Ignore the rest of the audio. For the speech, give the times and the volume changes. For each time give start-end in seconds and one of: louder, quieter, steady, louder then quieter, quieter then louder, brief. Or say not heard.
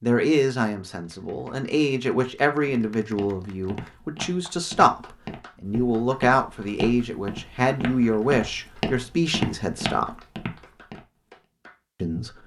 0.0-10.2 steady
12.0-12.4 brief.